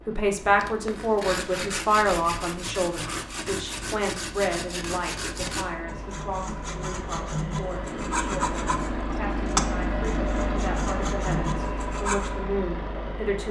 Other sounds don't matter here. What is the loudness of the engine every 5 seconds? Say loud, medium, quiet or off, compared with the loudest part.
quiet, loud, loud.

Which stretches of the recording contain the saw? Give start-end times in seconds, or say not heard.
0.6-12.3.